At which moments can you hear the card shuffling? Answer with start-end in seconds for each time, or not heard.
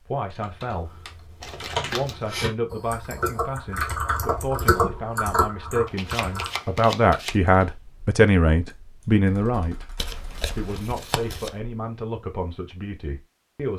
1.4-2.2, 5.8-7.3, 9.9-11.6.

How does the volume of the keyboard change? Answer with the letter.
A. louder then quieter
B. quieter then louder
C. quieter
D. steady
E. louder
A.